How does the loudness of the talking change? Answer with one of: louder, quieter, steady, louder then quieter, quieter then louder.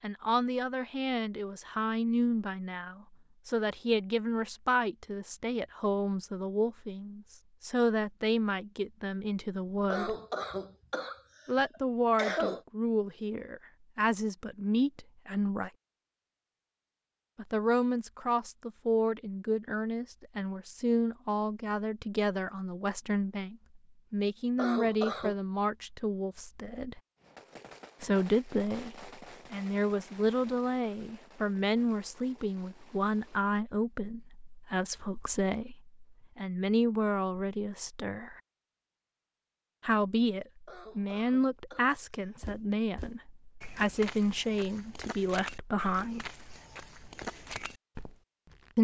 steady.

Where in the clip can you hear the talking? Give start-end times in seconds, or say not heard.
0.0-10.2, 11.4-15.7, 17.4-27.0, 28.0-38.4, 39.8-46.3.